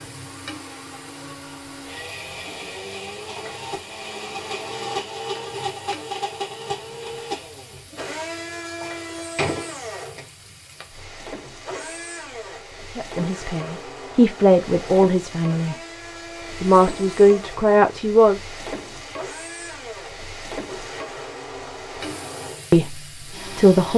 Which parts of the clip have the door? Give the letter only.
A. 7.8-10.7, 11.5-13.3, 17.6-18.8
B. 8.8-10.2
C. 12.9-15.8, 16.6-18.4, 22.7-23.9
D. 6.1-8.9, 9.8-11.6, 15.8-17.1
B.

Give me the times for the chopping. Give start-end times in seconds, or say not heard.
not heard.